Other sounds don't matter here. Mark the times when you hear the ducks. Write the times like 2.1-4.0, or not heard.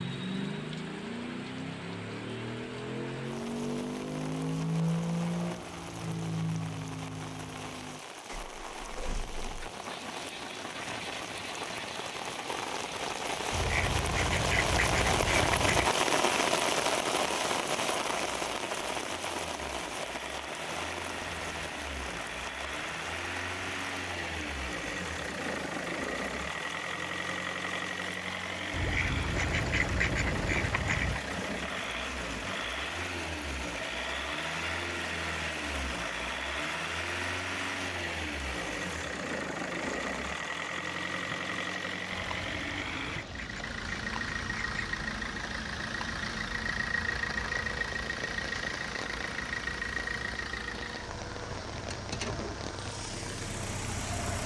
13.5-15.9, 28.7-31.2, 42.1-45.0.